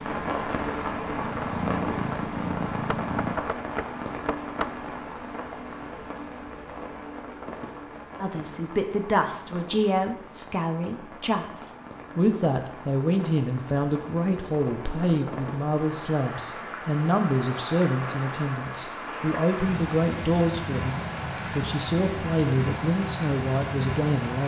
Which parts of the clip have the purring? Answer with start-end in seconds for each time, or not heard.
0.0-3.4.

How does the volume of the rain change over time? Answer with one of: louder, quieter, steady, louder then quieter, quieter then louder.
quieter then louder.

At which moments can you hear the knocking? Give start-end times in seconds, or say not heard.
2.9-4.7.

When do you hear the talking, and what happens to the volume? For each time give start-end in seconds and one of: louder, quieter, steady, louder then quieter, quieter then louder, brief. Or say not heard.
8.2-24.4 steady.